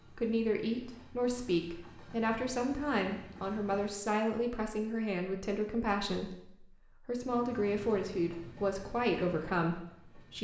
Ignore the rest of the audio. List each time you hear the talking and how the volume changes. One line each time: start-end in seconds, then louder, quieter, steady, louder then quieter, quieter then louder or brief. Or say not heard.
0.1-10.3 steady.